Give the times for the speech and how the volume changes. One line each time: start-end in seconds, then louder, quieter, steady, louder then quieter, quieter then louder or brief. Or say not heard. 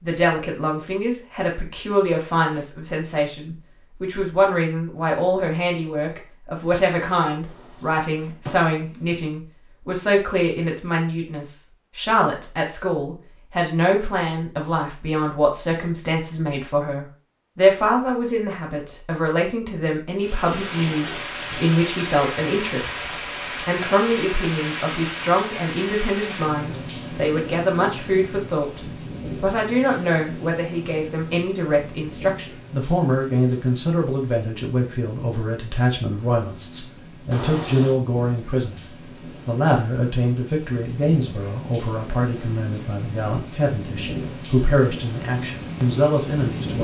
0.0-28.8 steady
29.4-46.7 steady.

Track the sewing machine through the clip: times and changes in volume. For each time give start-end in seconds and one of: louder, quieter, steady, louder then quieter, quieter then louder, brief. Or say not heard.
not heard.